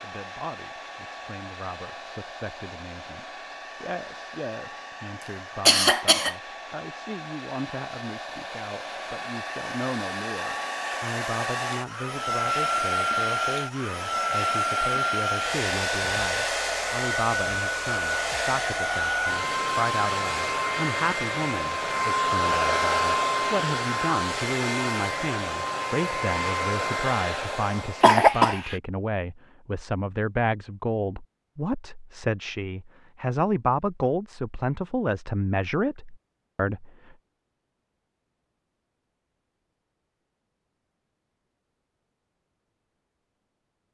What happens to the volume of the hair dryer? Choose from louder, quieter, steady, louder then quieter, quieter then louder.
louder.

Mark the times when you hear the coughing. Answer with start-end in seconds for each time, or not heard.
5.2-6.3, 28.0-28.8.